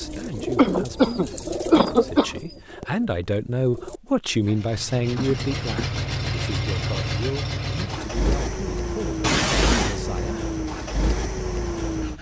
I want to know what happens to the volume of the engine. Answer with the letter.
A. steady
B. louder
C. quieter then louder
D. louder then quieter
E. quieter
A.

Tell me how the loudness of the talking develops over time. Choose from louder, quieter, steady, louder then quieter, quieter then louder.
louder then quieter.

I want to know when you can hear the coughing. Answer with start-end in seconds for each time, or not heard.
0.6-2.4, 5.2-5.9, 9.2-10.0.